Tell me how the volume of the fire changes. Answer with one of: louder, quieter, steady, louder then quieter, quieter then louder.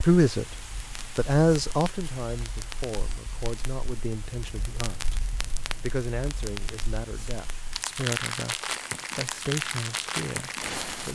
louder.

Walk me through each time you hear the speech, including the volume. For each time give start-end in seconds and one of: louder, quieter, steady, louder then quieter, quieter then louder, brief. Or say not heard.
0.0-11.1 quieter.